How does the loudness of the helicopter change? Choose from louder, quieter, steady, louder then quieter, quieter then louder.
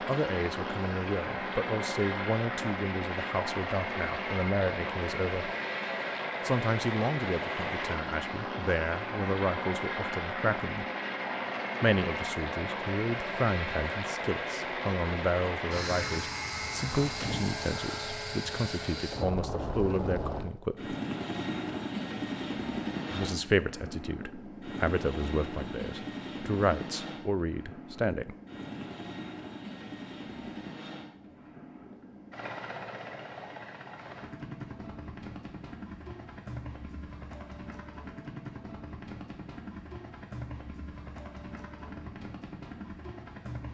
quieter.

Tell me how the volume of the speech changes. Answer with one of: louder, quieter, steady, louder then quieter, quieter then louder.
steady.